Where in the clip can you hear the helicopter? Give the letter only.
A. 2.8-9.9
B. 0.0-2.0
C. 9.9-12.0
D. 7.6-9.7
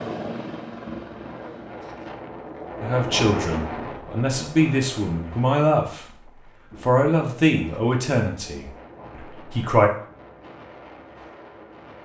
B.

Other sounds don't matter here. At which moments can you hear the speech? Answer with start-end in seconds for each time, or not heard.
2.8-9.9.